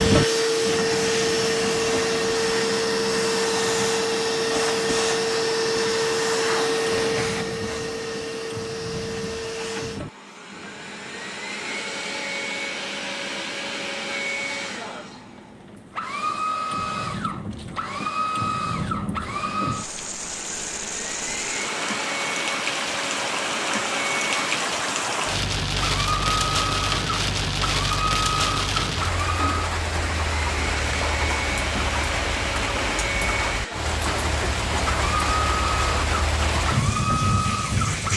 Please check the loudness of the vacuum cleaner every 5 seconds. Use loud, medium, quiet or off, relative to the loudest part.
loud, loud, medium, medium, medium, medium, medium, medium.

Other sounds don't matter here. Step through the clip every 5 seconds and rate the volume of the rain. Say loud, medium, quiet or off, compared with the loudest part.
medium, quiet, quiet, medium, loud, loud, loud, loud.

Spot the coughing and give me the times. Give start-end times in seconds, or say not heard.
not heard.